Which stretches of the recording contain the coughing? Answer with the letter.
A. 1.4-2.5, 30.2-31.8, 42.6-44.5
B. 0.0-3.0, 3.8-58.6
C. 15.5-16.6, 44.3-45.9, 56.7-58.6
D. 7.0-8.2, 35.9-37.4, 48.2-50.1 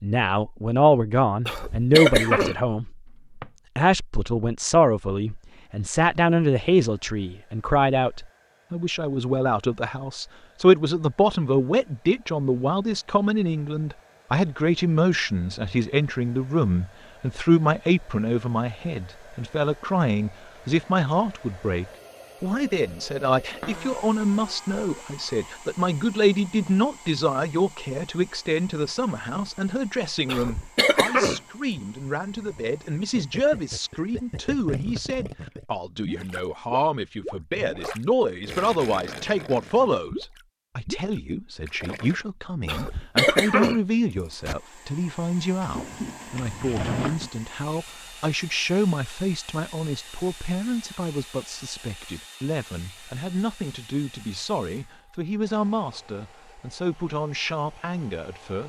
A.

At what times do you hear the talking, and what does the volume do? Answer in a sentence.
The talking can be heard briefly from 0.0 to 3.0 s; and from 3.8 to 58.6 s, getting quieter.